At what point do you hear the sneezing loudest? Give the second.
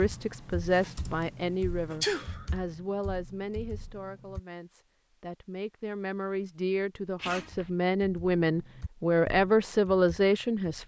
2 s.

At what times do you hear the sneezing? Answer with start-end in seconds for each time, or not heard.
2.0-2.5, 7.2-7.7.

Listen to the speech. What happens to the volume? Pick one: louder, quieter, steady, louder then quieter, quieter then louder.
quieter then louder.